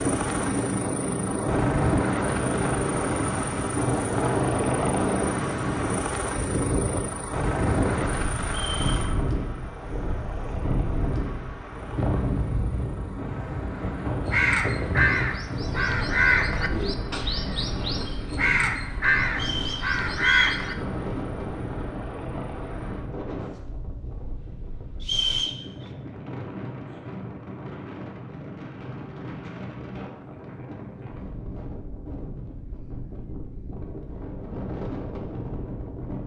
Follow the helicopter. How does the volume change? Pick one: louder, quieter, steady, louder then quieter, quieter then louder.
quieter.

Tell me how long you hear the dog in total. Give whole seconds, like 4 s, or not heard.
not heard.